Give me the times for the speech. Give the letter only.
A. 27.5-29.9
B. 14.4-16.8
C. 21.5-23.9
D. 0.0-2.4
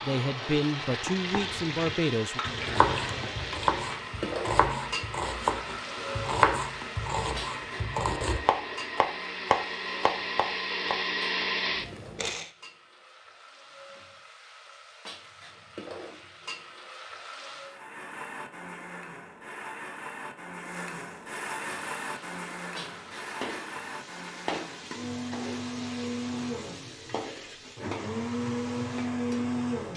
D.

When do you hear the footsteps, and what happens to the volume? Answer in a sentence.
The footsteps can't be heard in this clip.